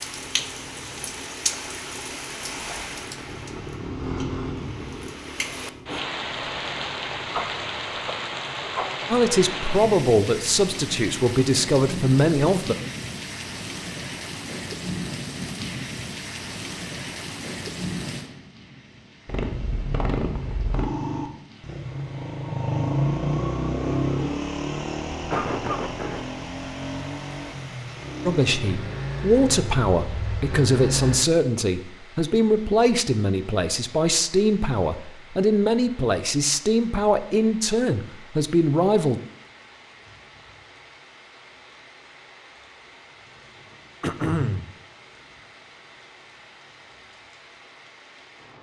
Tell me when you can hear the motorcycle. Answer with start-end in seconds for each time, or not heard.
0.0-7.8, 19.2-31.2.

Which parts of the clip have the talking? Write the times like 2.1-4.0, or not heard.
9.1-12.8, 28.2-39.2.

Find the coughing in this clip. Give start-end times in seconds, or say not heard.
7.3-9.1, 25.3-26.2, 44.0-44.7.